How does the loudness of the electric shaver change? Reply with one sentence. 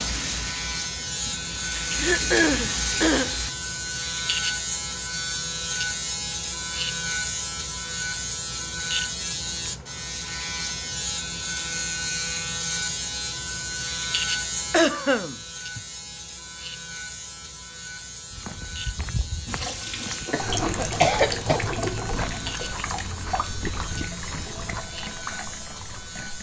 The volume of the electric shaver goes down.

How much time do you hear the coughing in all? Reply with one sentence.
The coughing can be heard for 4 seconds in total.